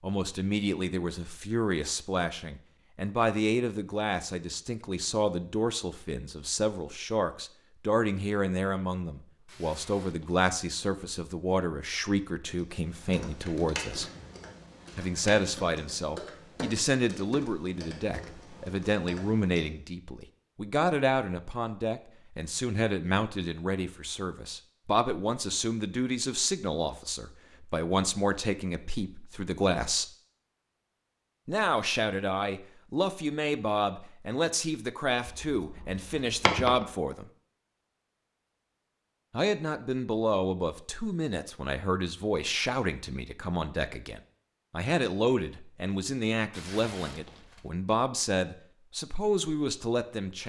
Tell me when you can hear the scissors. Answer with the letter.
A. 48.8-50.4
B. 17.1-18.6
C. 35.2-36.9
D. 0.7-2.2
C.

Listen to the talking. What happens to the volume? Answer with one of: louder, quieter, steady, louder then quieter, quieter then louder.
steady.